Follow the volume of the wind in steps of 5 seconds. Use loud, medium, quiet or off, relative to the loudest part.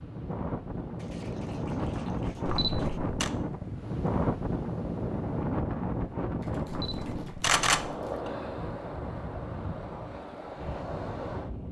loud, loud, medium.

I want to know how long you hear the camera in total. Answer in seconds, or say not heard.
2 s.